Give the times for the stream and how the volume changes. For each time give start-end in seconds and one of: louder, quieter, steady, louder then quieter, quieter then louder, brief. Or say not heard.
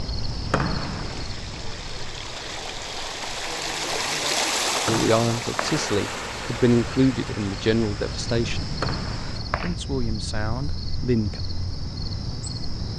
0.0-9.4 louder then quieter.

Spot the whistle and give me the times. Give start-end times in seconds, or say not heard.
0.5-1.2, 4.8-5.8, 8.8-9.8.